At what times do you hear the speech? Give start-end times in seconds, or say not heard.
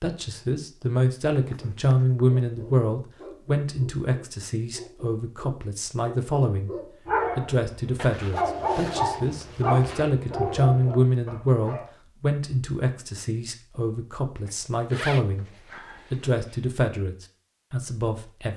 0.0-6.7, 7.3-15.4, 16.1-18.5.